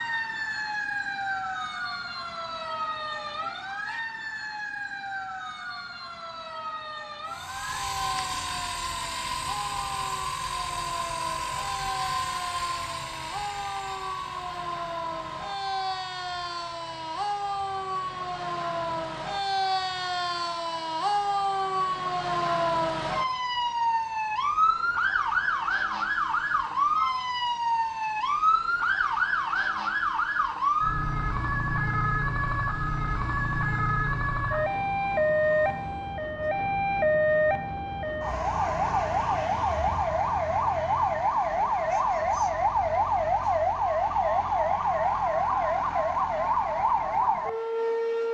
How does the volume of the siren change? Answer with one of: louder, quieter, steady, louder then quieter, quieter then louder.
louder.